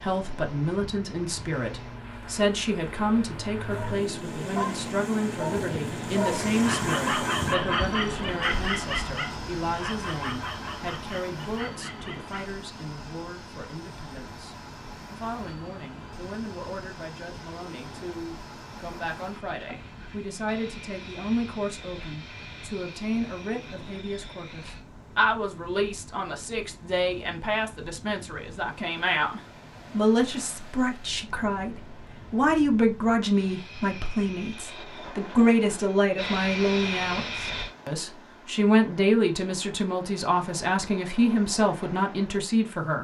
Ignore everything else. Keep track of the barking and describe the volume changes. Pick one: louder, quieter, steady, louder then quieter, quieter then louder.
quieter.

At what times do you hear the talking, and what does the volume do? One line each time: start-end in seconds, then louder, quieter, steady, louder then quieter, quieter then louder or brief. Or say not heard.
0.0-42.9 quieter then louder.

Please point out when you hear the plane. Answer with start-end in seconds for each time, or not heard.
0.0-24.9, 33.3-37.7.